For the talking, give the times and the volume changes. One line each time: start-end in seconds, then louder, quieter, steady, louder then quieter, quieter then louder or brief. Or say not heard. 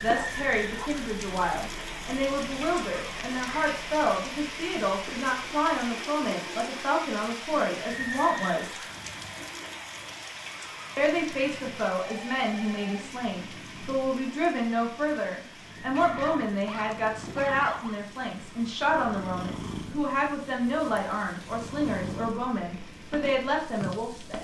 0.0-8.8 steady
10.9-24.3 steady.